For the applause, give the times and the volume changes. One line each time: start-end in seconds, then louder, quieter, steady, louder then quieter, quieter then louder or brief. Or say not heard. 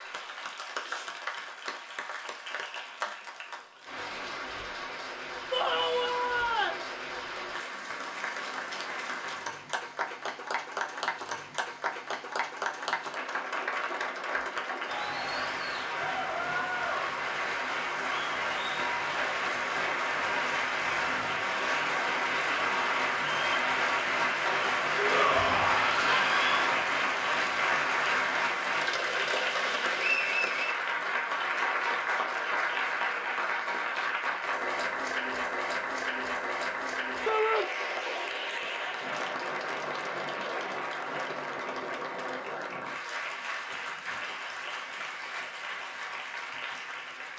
0.0-47.3 louder then quieter.